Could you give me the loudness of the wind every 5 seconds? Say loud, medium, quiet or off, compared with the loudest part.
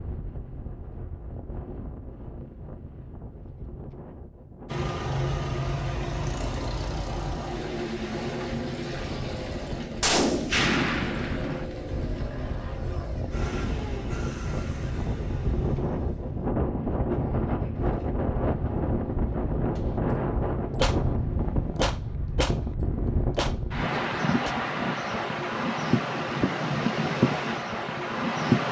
quiet, quiet, medium, loud, loud, loud.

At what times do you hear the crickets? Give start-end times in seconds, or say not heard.
not heard.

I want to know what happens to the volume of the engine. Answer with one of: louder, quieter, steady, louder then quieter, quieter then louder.
quieter.